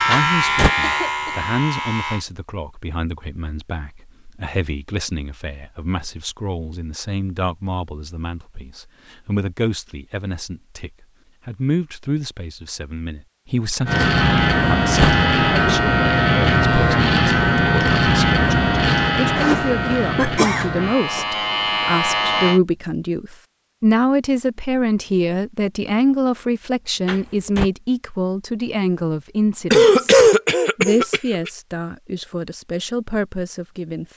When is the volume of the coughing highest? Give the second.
30 s.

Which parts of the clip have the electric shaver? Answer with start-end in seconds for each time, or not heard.
0.0-2.2, 13.8-22.6.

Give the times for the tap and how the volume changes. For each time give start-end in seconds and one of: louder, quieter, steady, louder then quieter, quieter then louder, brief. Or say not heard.
not heard.